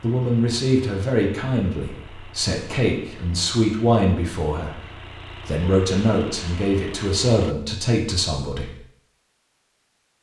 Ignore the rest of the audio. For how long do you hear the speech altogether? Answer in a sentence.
The speech can be heard for 9 seconds in total.